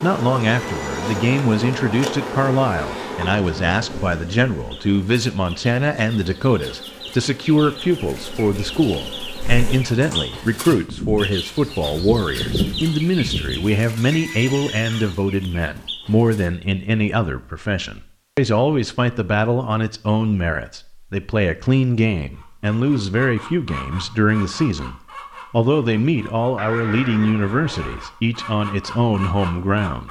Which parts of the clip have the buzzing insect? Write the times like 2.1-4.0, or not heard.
0.0-13.7.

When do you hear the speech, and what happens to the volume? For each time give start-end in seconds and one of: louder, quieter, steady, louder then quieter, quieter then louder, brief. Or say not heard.
0.0-30.0 steady.